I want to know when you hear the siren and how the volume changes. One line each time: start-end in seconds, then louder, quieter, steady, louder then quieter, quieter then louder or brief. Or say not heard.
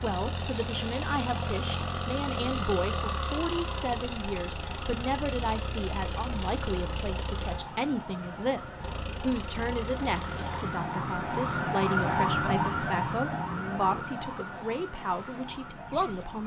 0.0-16.4 louder then quieter.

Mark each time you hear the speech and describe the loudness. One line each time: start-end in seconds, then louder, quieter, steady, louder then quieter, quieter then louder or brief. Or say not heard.
0.0-16.4 steady.